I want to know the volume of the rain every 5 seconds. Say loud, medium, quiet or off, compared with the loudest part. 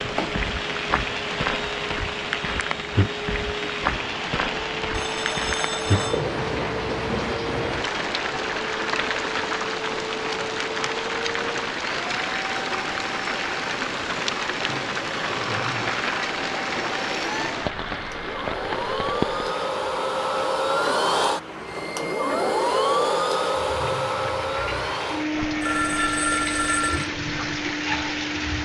loud, loud, loud, loud, medium, loud.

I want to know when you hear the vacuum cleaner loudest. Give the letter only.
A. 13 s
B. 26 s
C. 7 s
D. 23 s
D.